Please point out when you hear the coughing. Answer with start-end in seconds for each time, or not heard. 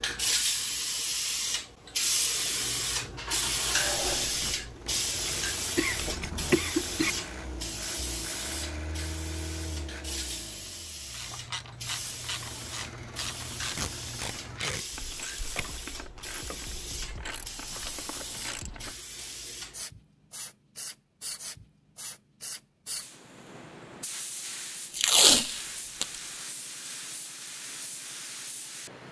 5.8-7.1.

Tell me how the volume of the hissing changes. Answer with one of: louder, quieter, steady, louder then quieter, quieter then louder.
quieter.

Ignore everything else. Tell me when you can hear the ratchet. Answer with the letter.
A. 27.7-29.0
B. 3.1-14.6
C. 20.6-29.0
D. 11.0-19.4
D.